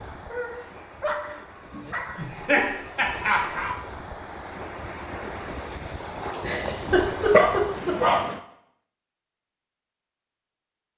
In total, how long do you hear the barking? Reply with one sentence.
You can hear the barking for 4 seconds altogether.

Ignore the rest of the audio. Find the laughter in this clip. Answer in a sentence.
The laughter can be heard from 2.1 to 3.8 s and from 6.3 to 8.0 s.